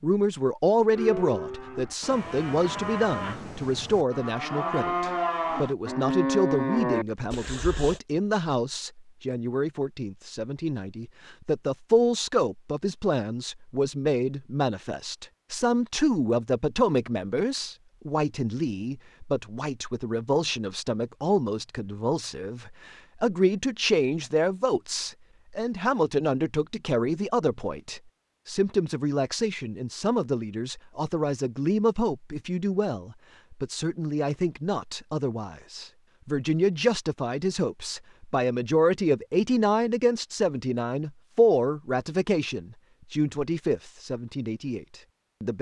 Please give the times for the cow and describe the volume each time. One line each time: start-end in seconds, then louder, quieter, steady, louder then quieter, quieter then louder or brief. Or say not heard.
0.9-8.0 louder.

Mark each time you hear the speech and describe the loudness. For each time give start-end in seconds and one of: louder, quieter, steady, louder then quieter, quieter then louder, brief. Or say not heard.
0.0-45.5 steady.